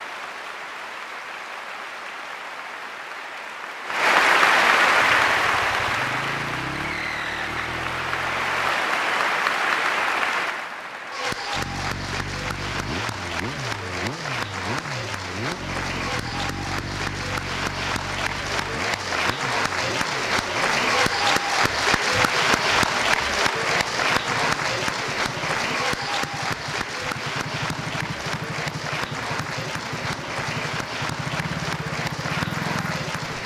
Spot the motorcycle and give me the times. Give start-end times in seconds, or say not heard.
5.0-8.8, 11.5-33.4.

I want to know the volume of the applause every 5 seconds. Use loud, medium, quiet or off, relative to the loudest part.
loud, loud, medium, medium, loud, medium, medium.